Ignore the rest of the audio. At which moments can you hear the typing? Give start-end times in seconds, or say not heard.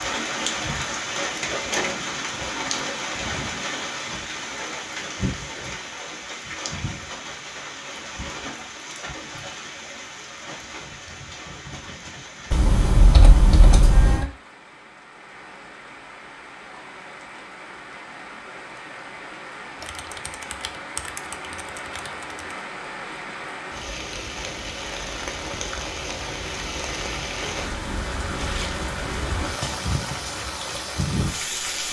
12.5-14.2, 19.8-22.1.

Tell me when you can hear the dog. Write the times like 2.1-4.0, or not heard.
not heard.